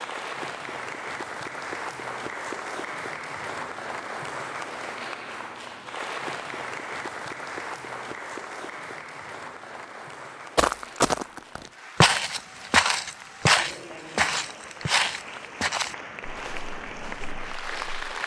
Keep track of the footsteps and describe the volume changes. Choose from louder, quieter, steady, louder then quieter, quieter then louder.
quieter.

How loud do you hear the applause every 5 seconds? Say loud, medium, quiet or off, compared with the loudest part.
loud, loud, medium, loud.